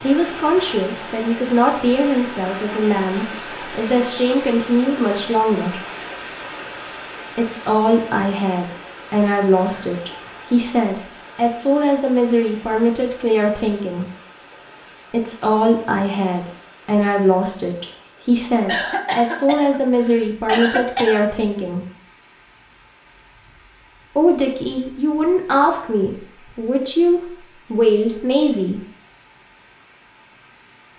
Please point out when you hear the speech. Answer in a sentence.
You can hear the speech from 0.0 to 5.8 s, from 7.3 to 14.1 s, from 15.1 to 21.9 s and from 24.1 to 28.8 s.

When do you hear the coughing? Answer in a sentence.
The coughing can be heard from 18.6 to 21.2 s.